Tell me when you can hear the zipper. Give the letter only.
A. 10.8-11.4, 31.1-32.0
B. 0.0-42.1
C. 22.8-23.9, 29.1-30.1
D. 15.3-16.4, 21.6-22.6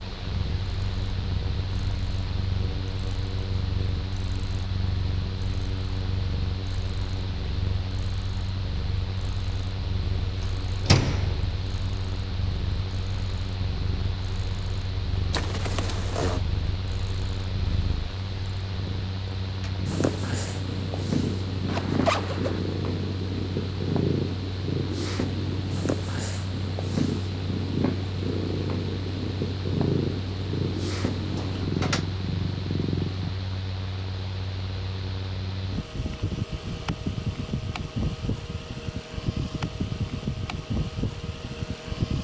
D.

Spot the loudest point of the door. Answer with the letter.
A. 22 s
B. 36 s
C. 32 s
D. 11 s
D.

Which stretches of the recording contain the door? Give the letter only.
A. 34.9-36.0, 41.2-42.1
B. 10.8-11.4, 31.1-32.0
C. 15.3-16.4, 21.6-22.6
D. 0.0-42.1
B.